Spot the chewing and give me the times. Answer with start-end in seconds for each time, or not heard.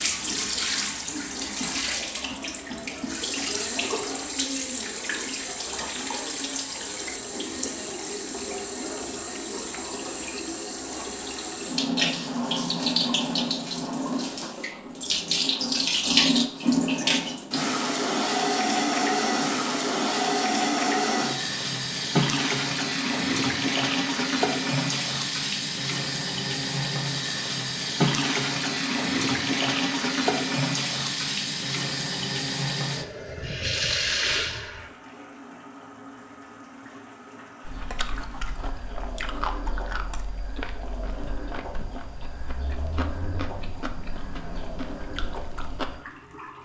37.6-46.0.